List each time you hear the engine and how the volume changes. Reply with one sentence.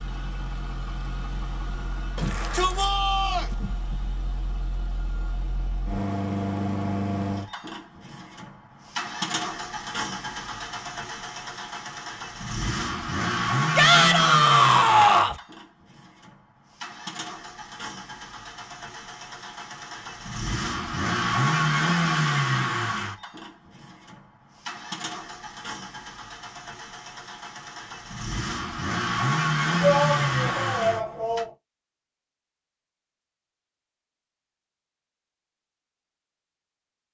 You can hear the engine from 0.0 to 31.4 s, getting louder.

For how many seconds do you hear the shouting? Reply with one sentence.
You can hear the shouting for 5 seconds altogether.